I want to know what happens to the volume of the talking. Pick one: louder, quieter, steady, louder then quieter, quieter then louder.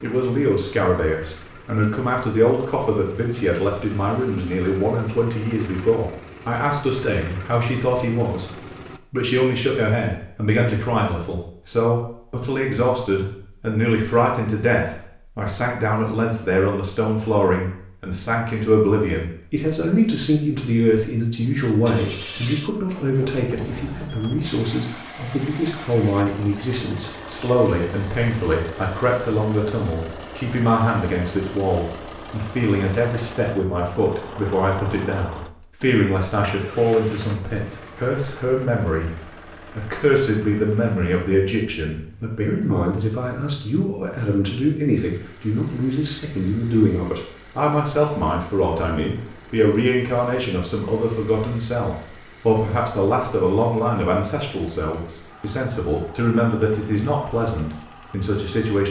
steady.